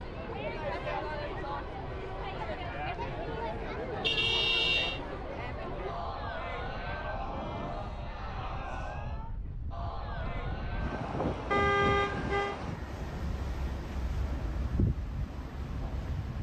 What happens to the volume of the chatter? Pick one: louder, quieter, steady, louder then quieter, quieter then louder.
quieter.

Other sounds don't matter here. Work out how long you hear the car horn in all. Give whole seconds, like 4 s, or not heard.
2 s.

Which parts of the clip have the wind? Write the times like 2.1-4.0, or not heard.
0.0-16.3.